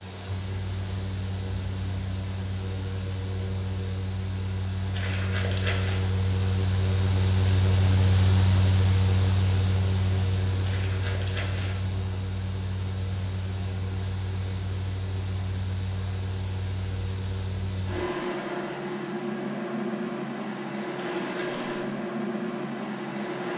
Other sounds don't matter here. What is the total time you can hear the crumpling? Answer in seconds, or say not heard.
3 s.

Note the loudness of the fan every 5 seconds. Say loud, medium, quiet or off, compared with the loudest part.
medium, loud, medium, loud, loud.